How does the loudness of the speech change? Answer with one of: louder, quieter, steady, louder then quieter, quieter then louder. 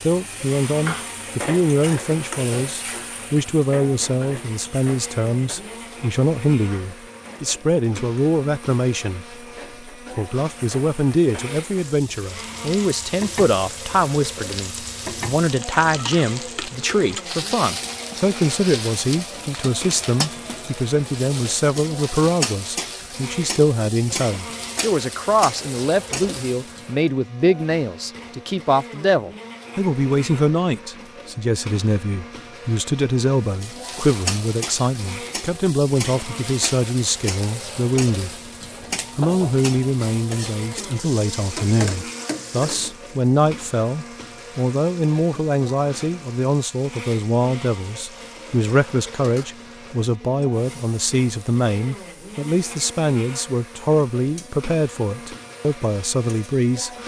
steady.